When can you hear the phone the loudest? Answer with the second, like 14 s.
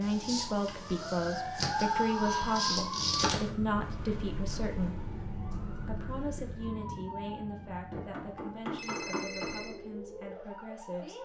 9 s.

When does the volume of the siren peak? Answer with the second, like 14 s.
3 s.